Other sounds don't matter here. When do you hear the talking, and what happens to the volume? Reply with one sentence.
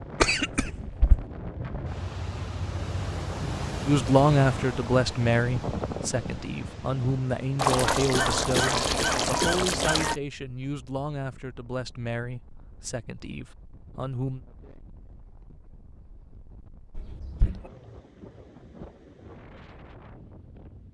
You can hear the talking from 3.9 to 14.4 s, getting quieter.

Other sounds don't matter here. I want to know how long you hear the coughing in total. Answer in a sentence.
The coughing can be heard for 4 seconds in total.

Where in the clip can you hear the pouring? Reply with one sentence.
The pouring can be heard from 7.5 to 10.2 s.